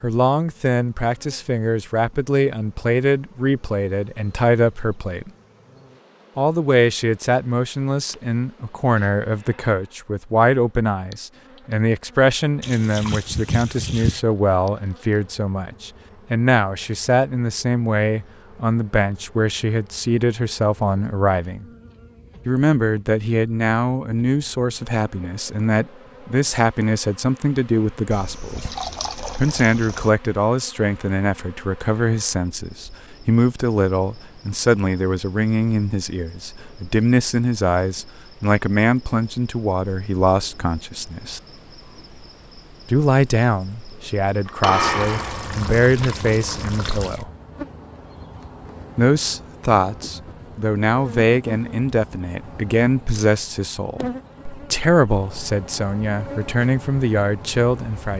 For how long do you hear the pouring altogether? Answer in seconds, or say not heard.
6 s.